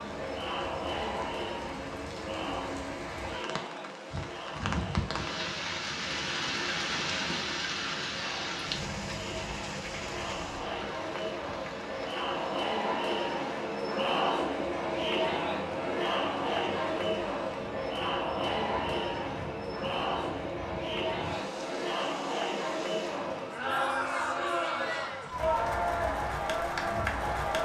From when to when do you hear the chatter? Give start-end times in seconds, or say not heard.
0.0-27.6.